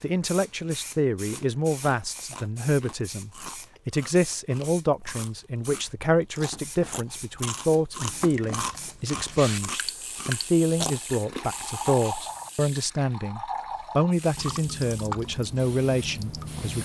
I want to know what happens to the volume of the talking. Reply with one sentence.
The volume of the talking stays about the same.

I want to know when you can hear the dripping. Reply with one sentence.
The dripping can be heard from 8.0 to 16.8 s.